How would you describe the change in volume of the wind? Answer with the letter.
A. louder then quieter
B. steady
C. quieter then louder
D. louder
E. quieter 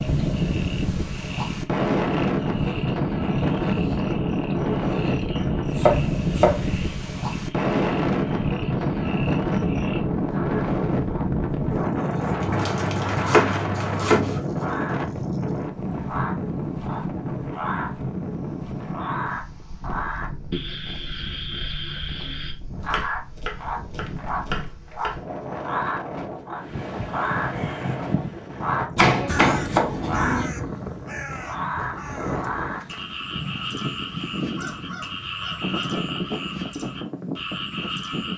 E.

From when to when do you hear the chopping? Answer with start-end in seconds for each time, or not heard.
5.3-6.7, 12.4-14.4, 22.9-25.6, 28.9-30.5.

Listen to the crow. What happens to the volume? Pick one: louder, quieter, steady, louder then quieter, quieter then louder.
quieter.